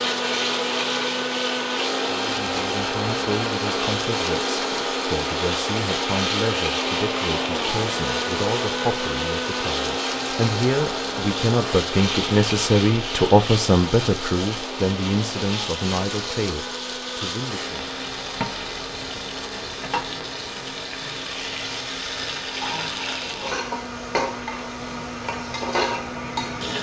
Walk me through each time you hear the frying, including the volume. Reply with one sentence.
You can hear the frying from 0.0 to 26.7 s, at a steady volume.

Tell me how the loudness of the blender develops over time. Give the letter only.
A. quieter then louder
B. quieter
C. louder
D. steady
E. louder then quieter
B.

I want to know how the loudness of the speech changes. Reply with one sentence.
The volume of the speech goes up, then down.